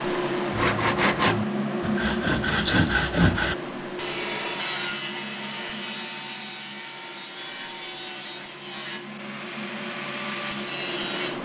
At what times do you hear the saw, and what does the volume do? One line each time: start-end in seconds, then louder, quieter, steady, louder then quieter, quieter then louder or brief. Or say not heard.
0.5-11.4 quieter.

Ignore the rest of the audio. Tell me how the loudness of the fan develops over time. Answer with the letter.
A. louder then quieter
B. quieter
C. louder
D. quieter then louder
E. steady
D.